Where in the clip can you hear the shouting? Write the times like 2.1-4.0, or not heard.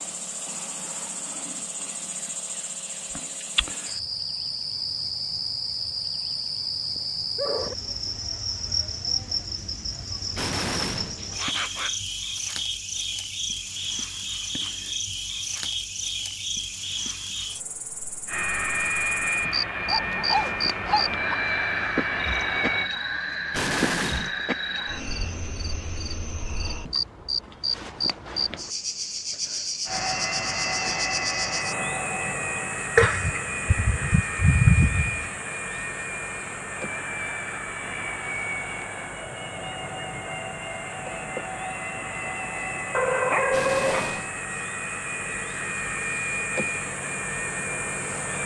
not heard.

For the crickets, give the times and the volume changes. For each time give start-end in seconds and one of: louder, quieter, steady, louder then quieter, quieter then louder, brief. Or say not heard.
0.0-48.4 quieter.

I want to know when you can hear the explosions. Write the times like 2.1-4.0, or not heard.
10.3-11.2, 23.5-24.4, 43.5-44.3.